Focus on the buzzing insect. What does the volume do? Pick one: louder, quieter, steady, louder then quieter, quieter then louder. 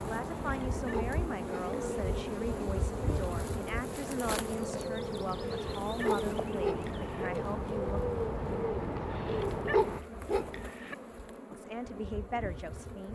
quieter.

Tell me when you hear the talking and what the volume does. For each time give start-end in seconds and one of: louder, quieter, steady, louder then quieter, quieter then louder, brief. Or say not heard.
0.1-8.0 steady
11.6-13.1 brief.